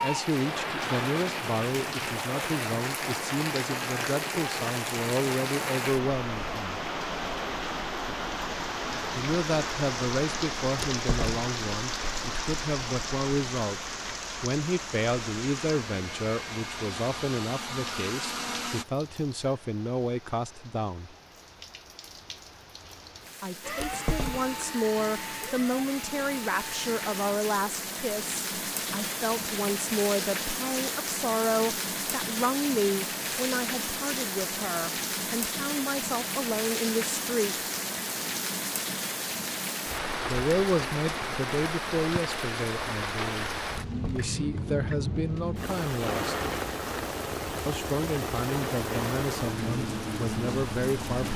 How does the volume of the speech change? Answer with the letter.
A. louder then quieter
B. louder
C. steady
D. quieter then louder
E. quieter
C.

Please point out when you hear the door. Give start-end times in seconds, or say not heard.
10.9-11.4, 23.8-24.6, 43.7-44.6.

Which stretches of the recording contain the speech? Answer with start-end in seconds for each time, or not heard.
0.0-6.8, 9.1-21.1, 23.4-37.5, 40.2-46.4, 47.6-51.3.